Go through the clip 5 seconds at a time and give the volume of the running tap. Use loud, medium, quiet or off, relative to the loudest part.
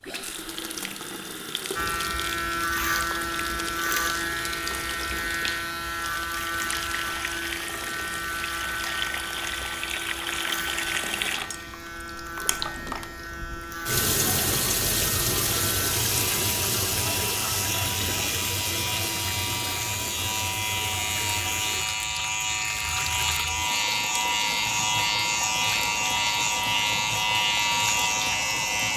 medium, medium, loud, loud, medium, medium.